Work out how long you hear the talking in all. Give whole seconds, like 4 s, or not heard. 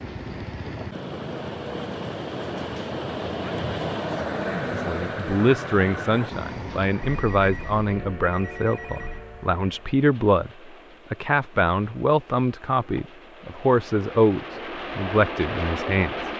12 s.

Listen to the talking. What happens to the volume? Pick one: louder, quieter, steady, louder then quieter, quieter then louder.
steady.